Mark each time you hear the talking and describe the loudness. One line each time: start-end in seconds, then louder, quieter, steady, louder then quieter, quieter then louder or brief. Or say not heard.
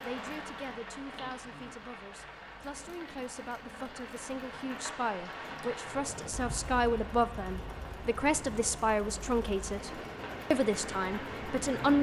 0.0-11.9 louder.